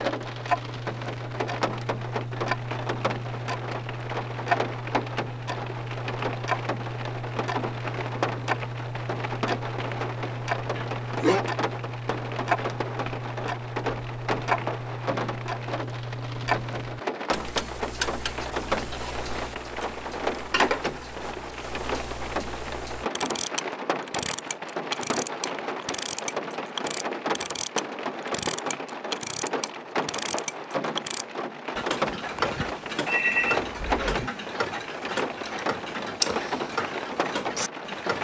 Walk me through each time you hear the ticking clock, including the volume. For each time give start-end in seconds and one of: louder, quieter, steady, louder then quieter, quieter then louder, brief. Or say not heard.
0.0-38.1 steady.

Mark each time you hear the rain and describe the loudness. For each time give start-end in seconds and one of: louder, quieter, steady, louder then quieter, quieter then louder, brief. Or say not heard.
0.0-38.1 steady.